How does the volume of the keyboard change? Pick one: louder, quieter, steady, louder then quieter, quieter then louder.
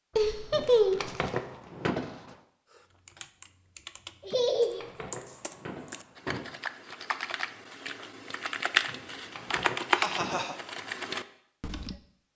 louder.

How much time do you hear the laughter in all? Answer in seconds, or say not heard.
2 s.